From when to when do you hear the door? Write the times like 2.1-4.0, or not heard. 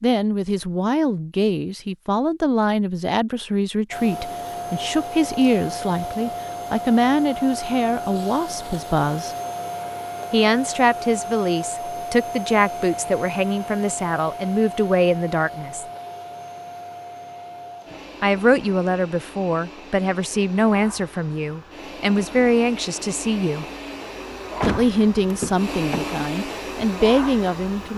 24.6-26.1.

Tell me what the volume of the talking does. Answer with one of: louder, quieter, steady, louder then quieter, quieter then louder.
steady.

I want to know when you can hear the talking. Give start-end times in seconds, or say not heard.
0.0-9.3, 10.3-15.8, 18.2-23.6, 24.6-27.9.